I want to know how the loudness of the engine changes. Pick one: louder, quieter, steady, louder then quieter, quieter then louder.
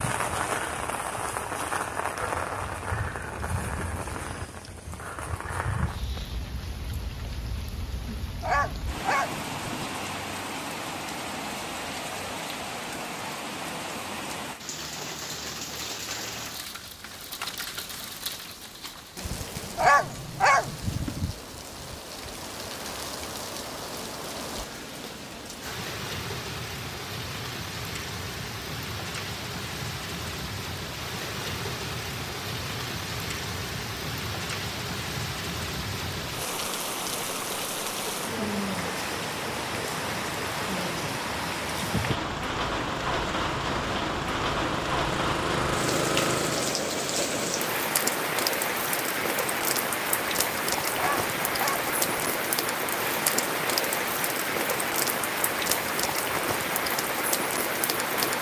louder.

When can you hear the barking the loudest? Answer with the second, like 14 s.
20 s.